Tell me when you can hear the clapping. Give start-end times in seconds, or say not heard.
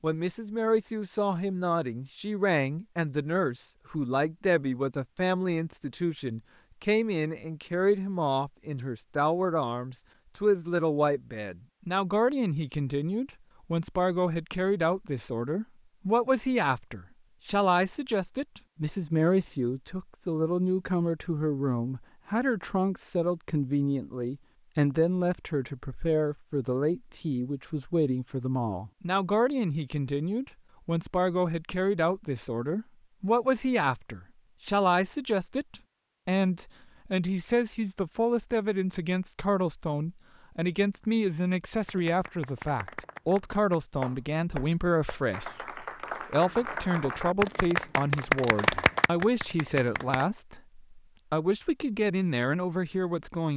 41.9-50.2.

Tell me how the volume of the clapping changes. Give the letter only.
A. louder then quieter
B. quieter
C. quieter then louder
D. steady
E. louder
E.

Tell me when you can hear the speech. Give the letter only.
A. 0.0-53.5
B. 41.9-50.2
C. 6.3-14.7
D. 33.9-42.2
A.